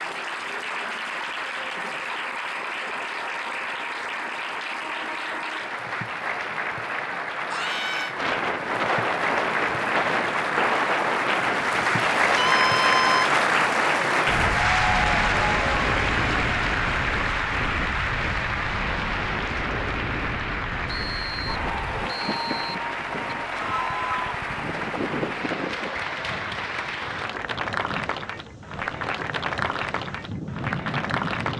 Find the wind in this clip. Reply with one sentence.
The wind can be heard from 8.2 to 31.5 s.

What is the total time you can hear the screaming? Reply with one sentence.
The screaming can be heard for 2 seconds in total.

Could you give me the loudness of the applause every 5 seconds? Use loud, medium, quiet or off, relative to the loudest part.
medium, medium, loud, loud, medium, medium, medium.